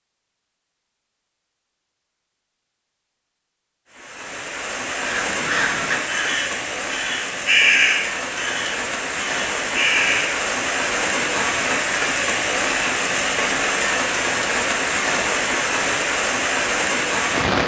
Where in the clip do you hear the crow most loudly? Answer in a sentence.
The volume of the crow peaks at 8 seconds.